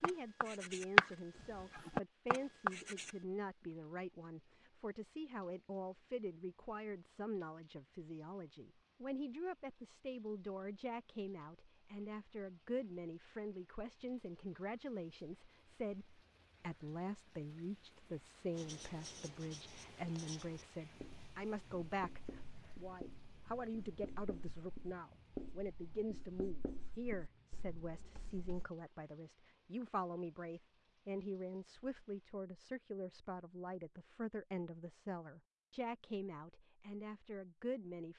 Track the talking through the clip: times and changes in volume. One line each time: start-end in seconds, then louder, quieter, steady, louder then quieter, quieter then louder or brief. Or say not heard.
0.0-38.1 steady.